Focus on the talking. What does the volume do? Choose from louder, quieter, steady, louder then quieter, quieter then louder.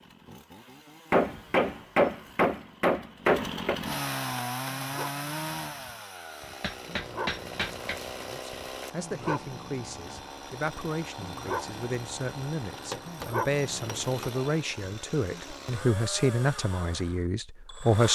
louder.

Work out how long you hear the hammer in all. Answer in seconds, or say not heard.
6 s.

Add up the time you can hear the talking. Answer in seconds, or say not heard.
10 s.